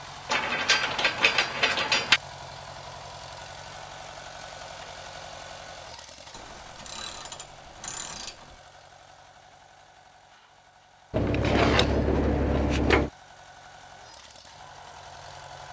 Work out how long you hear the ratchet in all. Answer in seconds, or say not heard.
6 s.